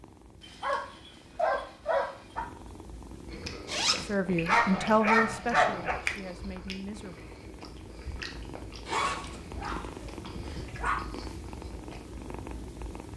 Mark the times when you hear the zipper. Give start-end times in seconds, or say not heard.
3.6-4.2, 8.8-9.6.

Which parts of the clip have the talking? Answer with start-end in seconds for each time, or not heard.
4.0-7.2.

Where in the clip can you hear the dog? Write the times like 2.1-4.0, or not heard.
0.4-2.4, 4.5-6.0, 8.9-11.0.